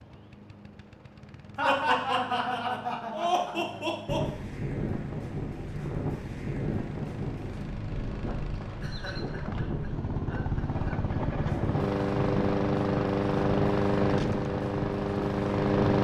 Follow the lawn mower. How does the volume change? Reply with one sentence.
The loudness of the lawn mower goes up.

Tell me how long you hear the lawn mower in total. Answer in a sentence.
The lawn mower can be heard for 16 seconds in total.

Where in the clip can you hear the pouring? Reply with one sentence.
The pouring can't be heard in this clip.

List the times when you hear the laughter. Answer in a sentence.
You can hear the laughter from 1.6 to 4.2 s and from 8.6 to 10.9 s.